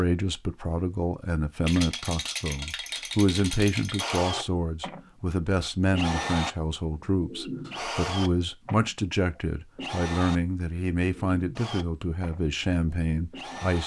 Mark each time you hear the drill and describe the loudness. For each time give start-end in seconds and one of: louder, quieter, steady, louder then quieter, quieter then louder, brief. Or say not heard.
4.0-13.8 quieter.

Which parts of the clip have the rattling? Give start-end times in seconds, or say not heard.
1.6-4.2.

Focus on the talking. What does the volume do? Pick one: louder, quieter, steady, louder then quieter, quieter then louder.
steady.